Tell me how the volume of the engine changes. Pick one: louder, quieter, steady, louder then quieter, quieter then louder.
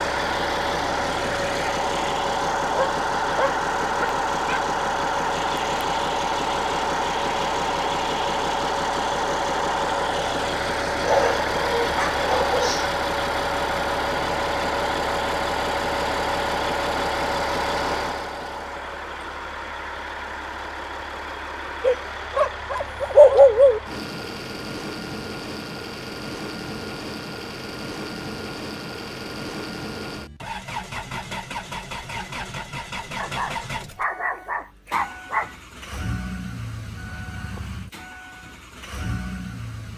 quieter.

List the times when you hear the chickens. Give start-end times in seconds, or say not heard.
not heard.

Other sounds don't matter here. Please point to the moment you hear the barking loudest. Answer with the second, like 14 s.
23 s.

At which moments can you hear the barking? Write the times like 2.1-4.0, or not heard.
2.6-4.6, 11.1-12.9, 21.8-23.8, 33.2-35.5.